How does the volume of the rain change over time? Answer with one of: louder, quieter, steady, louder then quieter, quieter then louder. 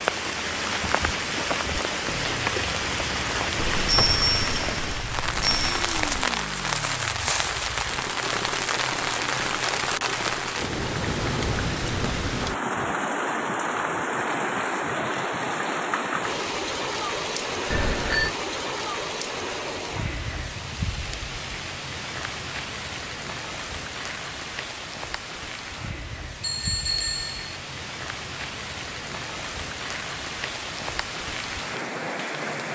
quieter.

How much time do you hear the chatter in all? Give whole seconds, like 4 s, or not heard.
not heard.